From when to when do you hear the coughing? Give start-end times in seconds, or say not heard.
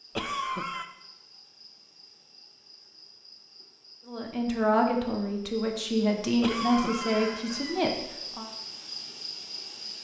0.1-0.8, 6.4-7.8.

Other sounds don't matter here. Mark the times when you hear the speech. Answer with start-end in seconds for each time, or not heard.
4.0-8.5.